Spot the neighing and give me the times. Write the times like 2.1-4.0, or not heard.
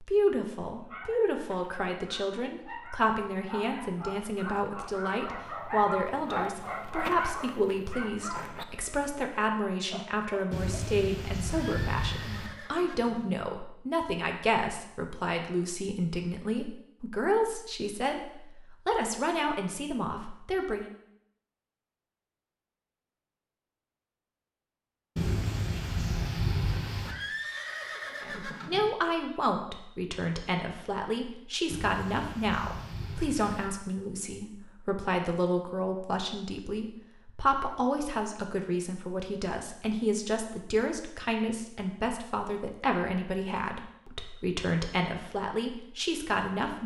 11.4-13.3, 27.0-28.9.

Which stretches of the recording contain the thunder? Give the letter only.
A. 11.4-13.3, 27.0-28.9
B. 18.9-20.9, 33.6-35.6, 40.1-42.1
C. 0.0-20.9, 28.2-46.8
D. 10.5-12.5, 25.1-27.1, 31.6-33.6
D.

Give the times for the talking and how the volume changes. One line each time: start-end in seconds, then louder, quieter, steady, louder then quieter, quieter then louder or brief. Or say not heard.
0.0-20.9 steady
28.2-46.8 steady.